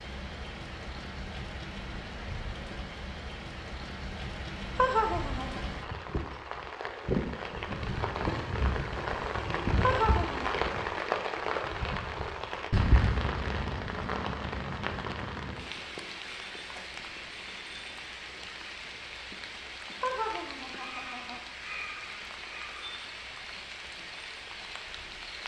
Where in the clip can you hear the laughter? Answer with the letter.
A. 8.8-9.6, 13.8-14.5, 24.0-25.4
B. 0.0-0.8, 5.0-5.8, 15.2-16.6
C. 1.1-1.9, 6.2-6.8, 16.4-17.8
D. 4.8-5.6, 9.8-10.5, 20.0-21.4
D.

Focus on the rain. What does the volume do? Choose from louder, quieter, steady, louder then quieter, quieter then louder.
louder then quieter.